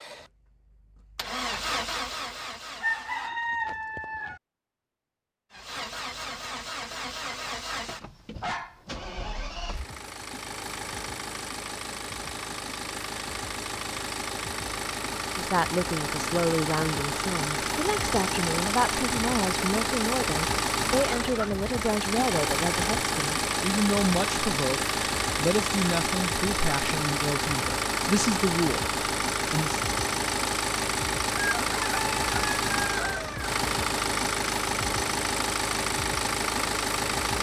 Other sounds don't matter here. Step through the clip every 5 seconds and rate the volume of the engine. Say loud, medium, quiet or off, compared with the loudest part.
medium, medium, medium, loud, loud, loud, loud, loud.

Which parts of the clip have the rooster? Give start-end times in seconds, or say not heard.
2.8-4.4, 31.4-33.5.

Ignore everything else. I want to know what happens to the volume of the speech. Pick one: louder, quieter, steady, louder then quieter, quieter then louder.
steady.